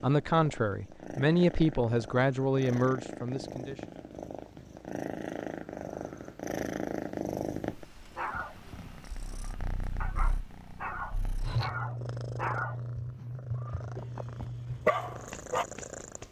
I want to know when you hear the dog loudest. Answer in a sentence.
The volume of the dog peaks at 15 seconds.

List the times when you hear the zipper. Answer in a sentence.
The zipper can't be heard in this clip.